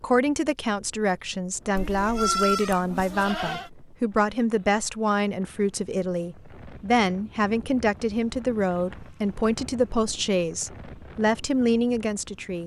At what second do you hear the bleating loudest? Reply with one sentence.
The loudest moment of the bleating is at 2 seconds.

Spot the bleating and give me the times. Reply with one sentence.
The bleating can be heard from 1.8 to 3.7 s.